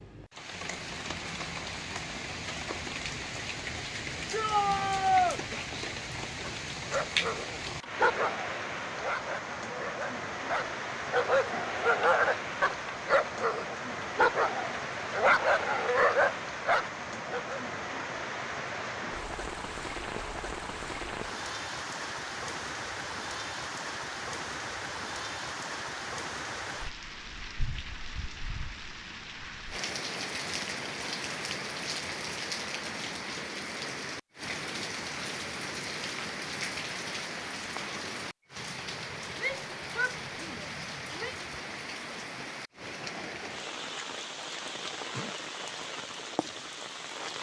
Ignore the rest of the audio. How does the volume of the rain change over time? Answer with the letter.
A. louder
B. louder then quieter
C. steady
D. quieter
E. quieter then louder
C.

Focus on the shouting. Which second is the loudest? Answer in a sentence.
The loudest moment of the shouting is at 5 seconds.